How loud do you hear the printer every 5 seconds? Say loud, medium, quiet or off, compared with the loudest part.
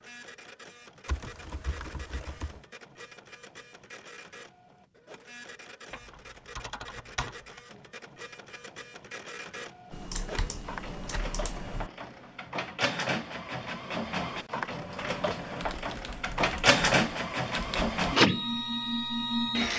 quiet, quiet, medium, loud.